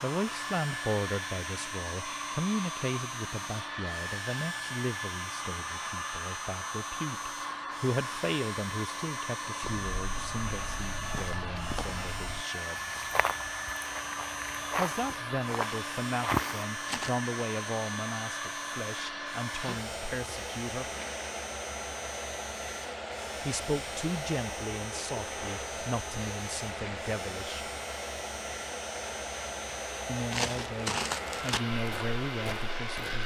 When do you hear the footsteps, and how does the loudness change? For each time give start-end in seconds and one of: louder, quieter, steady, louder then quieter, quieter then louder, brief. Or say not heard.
9.6-17.1 louder
30.3-33.2 brief.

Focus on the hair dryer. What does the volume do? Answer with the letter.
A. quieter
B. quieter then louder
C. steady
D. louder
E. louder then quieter
C.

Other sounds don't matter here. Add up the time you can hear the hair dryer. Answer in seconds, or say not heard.
33 s.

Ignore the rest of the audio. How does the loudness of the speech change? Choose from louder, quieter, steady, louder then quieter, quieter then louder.
steady.